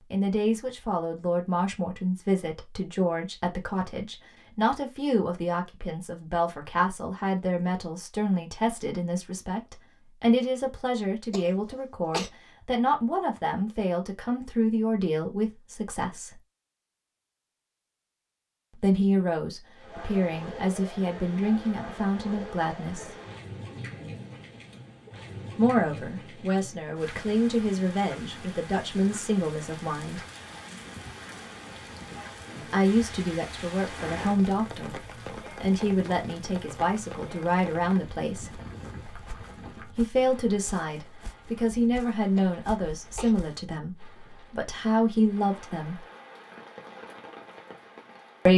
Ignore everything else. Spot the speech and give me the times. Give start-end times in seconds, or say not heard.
0.1-16.4, 18.8-23.1, 25.6-30.2, 32.7-35.0, 35.6-38.6, 39.9-46.0.